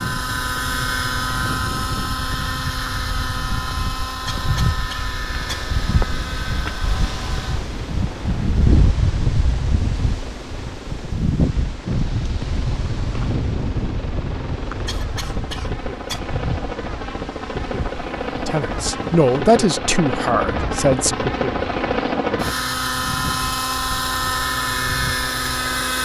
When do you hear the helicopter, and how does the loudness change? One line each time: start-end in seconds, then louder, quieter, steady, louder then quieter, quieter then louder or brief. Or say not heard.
0.0-26.0 quieter then louder.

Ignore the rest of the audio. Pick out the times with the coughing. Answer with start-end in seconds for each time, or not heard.
4.2-5.7, 14.8-16.2.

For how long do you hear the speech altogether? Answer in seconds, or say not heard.
3 s.